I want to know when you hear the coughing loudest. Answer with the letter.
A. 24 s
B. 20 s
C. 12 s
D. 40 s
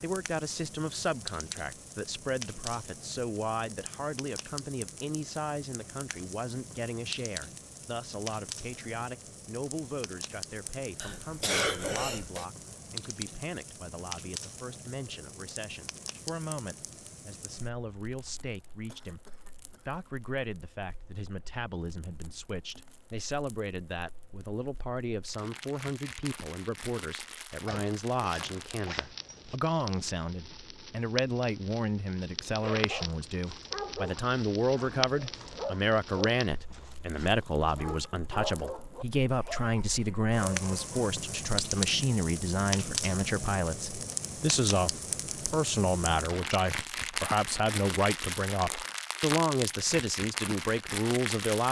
C.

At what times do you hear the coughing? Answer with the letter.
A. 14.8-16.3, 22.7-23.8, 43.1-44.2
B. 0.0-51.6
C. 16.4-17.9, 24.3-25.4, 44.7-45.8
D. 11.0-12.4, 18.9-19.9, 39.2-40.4
D.